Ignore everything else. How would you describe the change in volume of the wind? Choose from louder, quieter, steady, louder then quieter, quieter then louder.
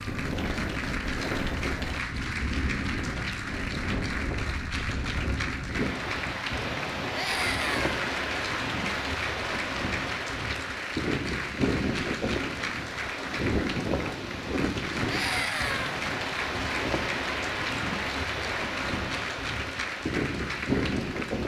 steady.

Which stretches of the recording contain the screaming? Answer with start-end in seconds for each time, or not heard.
7.1-7.9, 15.1-15.9.